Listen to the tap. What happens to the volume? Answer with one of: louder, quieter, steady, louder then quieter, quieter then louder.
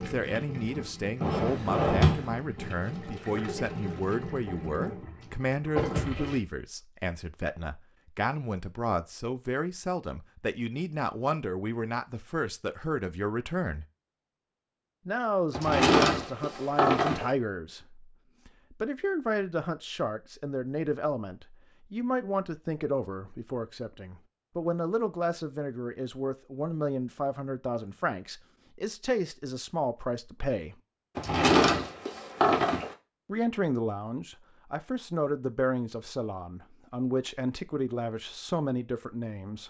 louder.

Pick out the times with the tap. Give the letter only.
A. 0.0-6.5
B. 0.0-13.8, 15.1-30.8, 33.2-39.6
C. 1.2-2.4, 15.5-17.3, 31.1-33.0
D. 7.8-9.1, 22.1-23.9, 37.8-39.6
A.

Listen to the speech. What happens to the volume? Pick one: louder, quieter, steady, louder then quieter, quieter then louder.
steady.